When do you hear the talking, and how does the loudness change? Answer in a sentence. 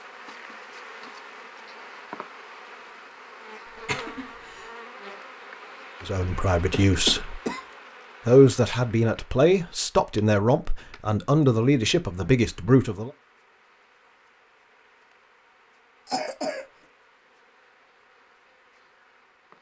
You can hear the talking briefly from 6.0 to 7.4 s; and from 8.2 to 13.1 s, at a steady volume.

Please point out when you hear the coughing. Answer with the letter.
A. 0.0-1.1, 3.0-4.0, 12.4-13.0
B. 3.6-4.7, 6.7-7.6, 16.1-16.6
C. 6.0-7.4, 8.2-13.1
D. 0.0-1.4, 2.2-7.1
B.